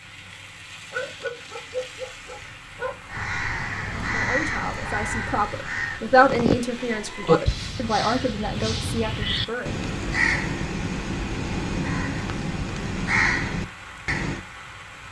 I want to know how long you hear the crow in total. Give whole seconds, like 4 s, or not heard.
11 s.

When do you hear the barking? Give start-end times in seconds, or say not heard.
0.9-3.0.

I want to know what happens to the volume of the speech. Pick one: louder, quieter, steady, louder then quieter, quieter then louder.
louder then quieter.